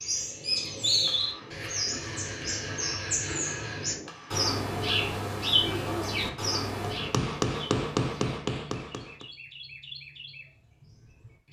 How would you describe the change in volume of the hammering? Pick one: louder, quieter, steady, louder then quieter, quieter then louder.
louder.